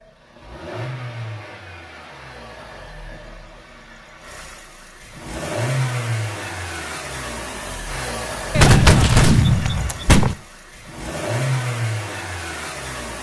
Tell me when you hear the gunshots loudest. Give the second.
9 s.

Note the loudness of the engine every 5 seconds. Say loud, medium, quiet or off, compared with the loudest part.
medium, loud, loud.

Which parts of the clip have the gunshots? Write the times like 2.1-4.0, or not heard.
8.5-10.3.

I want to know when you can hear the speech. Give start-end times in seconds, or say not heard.
not heard.